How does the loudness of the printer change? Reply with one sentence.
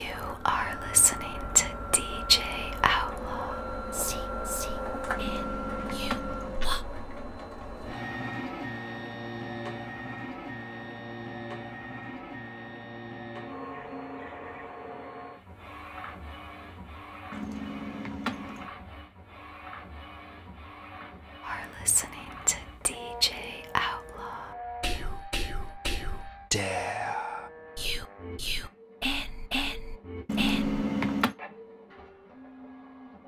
The loudness of the printer goes down.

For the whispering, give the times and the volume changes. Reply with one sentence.
You can hear the whispering from 0.0 to 6.8 s, getting quieter; and from 21.4 to 30.8 s, at a steady volume.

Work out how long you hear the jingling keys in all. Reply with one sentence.
The jingling keys can be heard for 4 seconds in total.